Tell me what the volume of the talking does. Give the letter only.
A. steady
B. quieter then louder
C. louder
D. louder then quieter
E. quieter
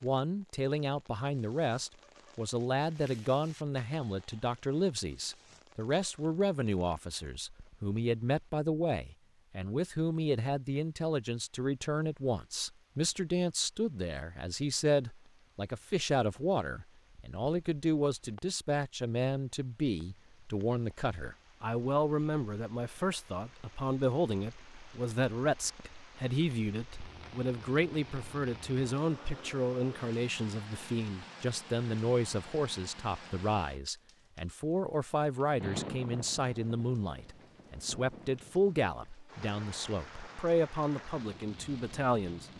A.